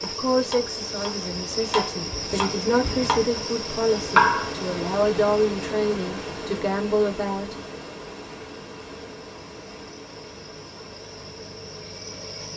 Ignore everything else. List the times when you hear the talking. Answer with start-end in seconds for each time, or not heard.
0.0-7.5.